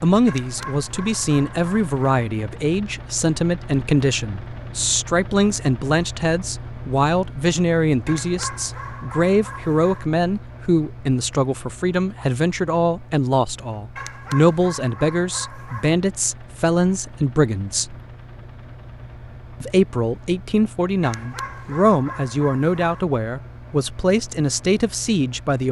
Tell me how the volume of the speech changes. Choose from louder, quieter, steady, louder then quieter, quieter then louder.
steady.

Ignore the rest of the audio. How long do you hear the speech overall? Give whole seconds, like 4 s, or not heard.
24 s.